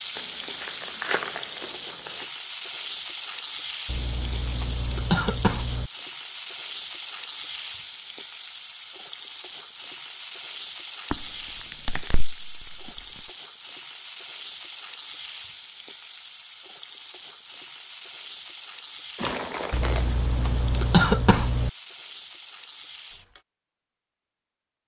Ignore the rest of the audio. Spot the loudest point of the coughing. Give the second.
21 s.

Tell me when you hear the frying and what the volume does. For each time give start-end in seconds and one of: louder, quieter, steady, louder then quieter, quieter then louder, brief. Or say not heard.
0.0-23.4 quieter.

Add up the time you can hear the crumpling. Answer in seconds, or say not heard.
5 s.